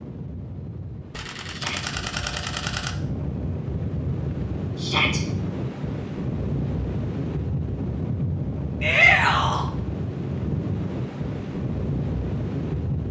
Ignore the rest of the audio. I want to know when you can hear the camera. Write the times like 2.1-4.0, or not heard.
1.1-3.0.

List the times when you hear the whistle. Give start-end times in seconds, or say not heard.
not heard.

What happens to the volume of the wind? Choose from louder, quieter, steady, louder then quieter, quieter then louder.
louder.